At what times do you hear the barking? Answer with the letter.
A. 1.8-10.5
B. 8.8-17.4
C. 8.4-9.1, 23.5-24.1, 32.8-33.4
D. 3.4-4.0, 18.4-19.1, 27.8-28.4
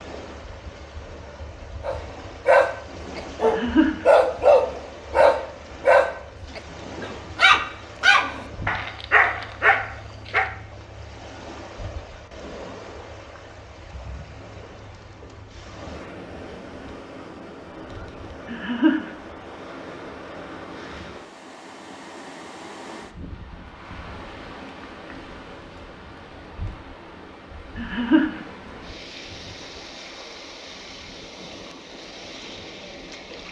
A.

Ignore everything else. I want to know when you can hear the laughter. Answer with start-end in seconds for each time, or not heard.
3.4-4.0, 18.4-19.1, 27.8-28.4.